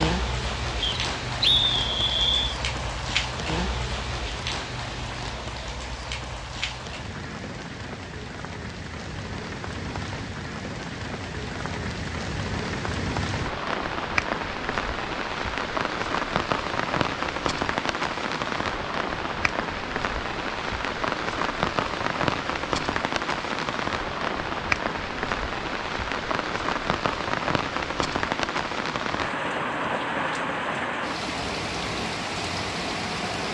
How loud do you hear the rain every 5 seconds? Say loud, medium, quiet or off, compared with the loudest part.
loud, medium, loud, loud, loud, loud, loud.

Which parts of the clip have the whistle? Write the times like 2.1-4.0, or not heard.
0.8-2.5.